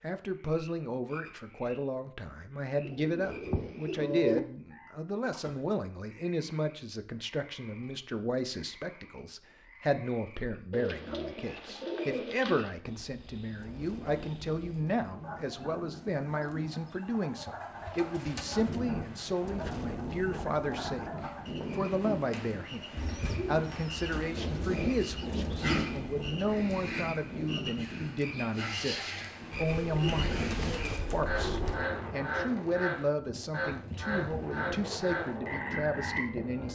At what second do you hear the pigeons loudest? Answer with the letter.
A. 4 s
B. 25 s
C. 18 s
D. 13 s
A.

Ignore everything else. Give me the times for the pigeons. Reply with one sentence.
You can hear the pigeons from 2.9 to 4.4 s, from 10.7 to 12.7 s, from 16.4 to 18.8 s, from 22.9 to 25.9 s and from 29.5 to 31.8 s.